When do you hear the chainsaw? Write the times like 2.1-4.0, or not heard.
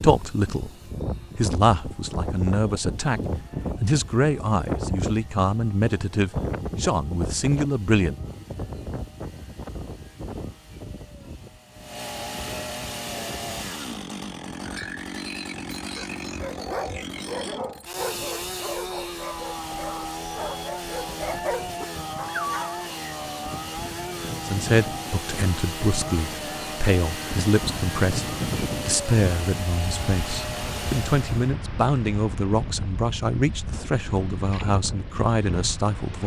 0.0-31.5.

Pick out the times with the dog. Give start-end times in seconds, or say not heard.
16.4-22.9.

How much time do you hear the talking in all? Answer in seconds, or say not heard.
19 s.